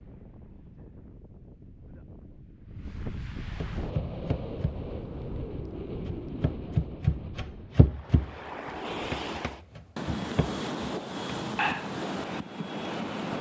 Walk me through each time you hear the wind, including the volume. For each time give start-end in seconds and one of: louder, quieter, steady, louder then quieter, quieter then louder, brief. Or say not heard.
0.0-13.3 louder.